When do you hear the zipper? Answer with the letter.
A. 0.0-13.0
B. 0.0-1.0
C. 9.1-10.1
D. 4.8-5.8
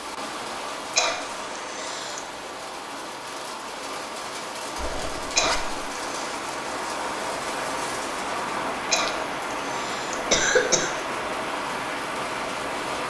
D.